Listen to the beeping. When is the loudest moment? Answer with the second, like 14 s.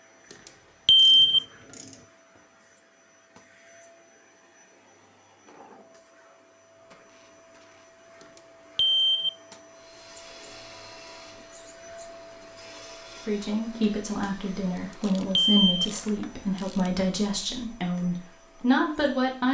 1 s.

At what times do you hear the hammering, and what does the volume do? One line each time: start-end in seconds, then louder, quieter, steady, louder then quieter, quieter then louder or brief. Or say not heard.
not heard.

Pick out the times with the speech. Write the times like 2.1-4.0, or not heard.
13.2-19.5.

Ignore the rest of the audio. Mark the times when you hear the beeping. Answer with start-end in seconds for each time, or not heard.
0.8-1.4, 8.8-9.3, 15.3-15.8.